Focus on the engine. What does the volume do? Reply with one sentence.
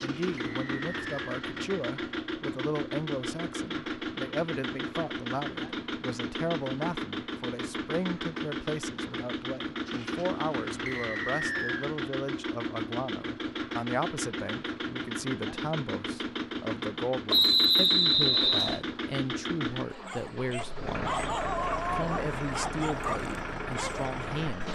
The volume of the engine stays about the same.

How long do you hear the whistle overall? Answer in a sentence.
You can hear the whistle for 3 seconds altogether.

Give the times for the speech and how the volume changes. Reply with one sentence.
You can hear the speech from 0.0 to 21.1 s, at a steady volume; and briefly from 21.9 to 24.7 s.